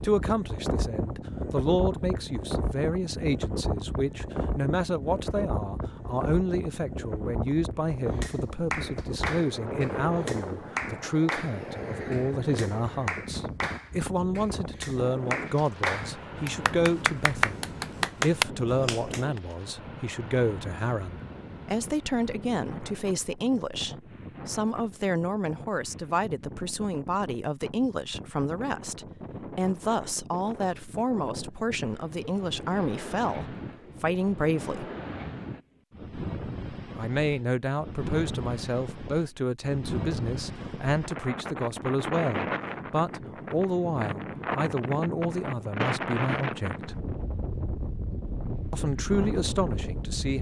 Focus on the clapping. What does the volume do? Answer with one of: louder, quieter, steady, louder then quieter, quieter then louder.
louder.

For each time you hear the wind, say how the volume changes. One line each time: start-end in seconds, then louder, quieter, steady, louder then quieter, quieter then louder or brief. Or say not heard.
0.0-50.3 quieter then louder.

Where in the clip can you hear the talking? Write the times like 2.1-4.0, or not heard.
0.0-34.9, 37.0-47.0, 48.7-50.3.